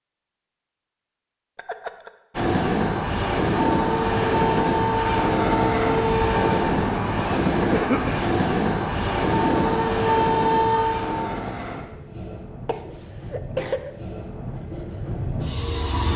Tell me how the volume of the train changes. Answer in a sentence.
The loudness of the train goes down.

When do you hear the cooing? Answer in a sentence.
You can't hear the cooing here.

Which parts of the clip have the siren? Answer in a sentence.
The siren can be heard from 3.6 to 6.7 s and from 9.3 to 11.2 s.